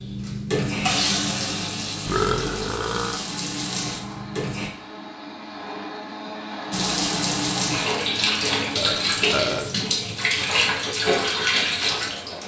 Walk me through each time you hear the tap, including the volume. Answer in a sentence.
You can hear the tap from 0.0 to 4.7 s, getting quieter; and from 6.7 to 12.4 s, at a steady volume.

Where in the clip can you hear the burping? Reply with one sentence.
You can hear the burping from 2.0 to 3.2 s and from 8.8 to 9.7 s.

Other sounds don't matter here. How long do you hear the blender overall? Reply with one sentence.
The blender can be heard for 9 seconds in total.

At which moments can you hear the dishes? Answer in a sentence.
You can't hear the dishes here.